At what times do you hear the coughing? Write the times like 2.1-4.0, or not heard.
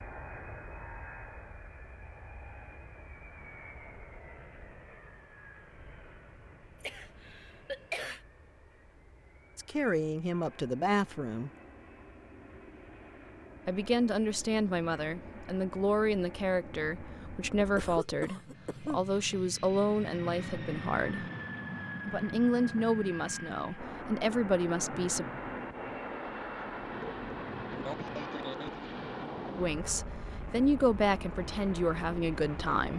6.8-8.2, 17.6-19.1, 27.0-28.9.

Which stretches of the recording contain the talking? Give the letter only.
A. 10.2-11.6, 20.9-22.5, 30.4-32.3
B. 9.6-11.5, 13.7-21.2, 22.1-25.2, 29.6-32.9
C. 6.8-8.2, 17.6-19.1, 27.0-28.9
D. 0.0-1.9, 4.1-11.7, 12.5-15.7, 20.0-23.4
B.